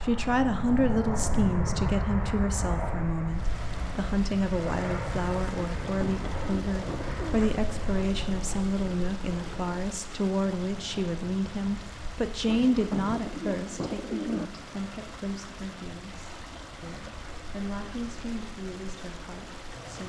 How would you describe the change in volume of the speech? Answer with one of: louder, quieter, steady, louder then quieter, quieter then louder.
quieter.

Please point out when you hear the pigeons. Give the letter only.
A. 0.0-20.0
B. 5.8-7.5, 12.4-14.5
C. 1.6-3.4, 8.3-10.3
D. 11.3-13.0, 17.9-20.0
B.